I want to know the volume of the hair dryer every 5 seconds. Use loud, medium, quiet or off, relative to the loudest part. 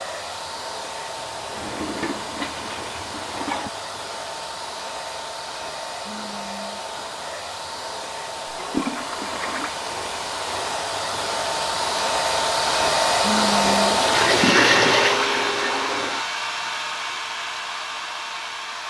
medium, medium, loud, medium.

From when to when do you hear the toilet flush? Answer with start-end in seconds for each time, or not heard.
1.1-3.7, 8.4-9.8, 13.7-16.2.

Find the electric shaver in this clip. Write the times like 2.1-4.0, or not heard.
not heard.